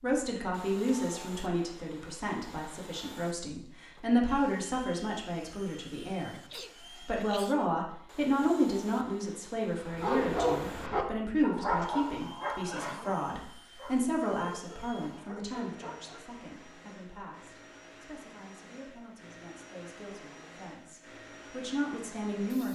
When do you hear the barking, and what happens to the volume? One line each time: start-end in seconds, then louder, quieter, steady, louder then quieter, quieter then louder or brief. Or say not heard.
9.8-16.3 quieter.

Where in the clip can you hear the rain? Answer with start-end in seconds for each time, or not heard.
not heard.